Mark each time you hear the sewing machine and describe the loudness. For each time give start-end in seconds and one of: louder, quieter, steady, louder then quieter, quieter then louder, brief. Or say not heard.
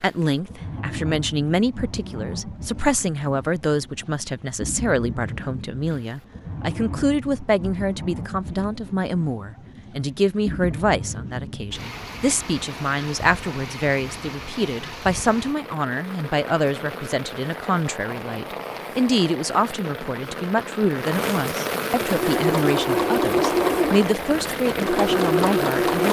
21.9-26.0 quieter then louder.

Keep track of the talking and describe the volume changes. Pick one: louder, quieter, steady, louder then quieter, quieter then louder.
steady.